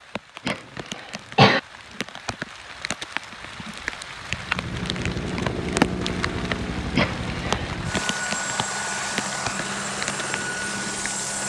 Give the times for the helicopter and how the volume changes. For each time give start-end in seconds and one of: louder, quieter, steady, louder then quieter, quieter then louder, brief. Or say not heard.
4.3-11.4 steady.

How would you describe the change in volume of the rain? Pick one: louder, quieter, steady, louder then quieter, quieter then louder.
louder then quieter.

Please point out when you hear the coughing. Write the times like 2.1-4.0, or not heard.
0.5-1.6, 7.0-7.8.